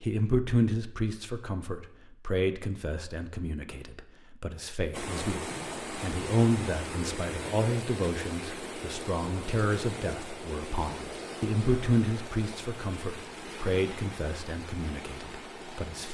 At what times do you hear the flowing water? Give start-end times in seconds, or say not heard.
4.9-16.0.